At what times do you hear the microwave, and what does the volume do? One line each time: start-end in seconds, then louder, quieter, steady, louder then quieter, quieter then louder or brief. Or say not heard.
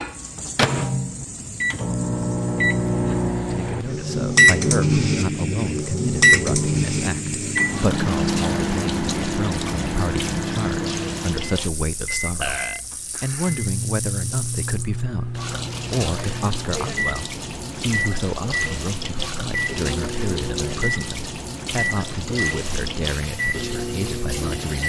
0.0-24.8 quieter.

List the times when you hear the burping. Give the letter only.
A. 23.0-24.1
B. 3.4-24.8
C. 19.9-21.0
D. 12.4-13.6
D.